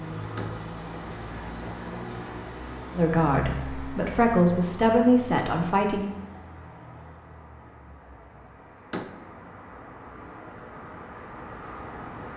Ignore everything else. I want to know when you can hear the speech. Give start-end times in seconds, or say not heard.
2.9-6.1.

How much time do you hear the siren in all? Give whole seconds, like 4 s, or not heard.
not heard.